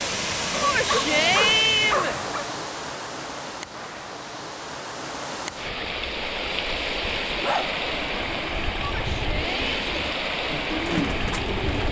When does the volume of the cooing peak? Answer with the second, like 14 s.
11 s.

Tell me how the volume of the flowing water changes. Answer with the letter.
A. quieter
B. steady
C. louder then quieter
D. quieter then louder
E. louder
D.